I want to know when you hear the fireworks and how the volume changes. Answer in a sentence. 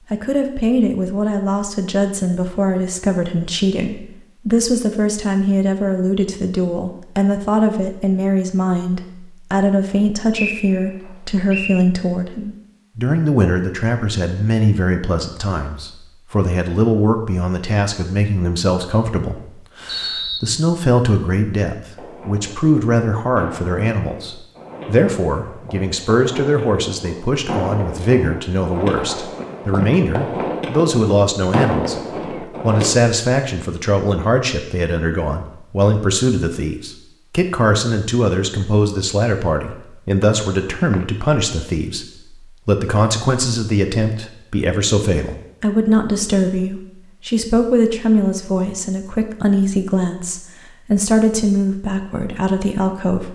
The fireworks can be heard from 21.9 to 33.0 s, getting louder.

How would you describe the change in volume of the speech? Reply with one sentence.
The loudness of the speech stays about the same.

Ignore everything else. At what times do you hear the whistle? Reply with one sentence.
You can hear the whistle from 10.3 to 11.8 s, from 19.9 to 20.6 s and from 40.2 to 41.0 s.